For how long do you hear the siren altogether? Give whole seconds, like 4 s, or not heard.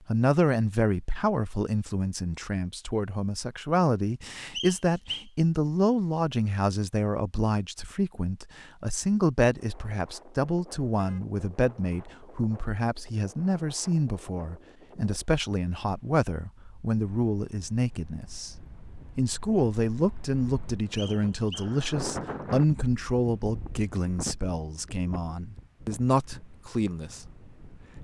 not heard.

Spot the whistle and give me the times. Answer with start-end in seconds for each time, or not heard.
4.5-5.2, 20.9-21.8.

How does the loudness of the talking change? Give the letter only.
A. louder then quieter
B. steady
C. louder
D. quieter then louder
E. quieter
B.